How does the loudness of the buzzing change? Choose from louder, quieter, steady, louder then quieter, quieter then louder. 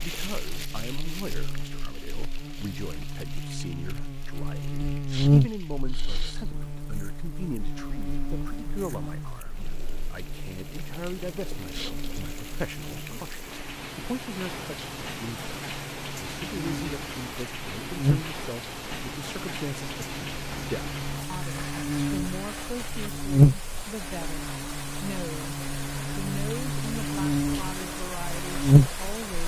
quieter then louder.